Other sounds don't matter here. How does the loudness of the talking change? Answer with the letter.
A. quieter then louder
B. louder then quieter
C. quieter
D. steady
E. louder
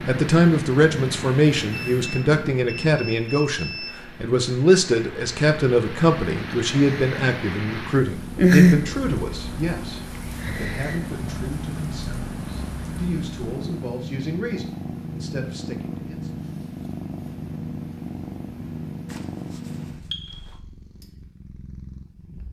C.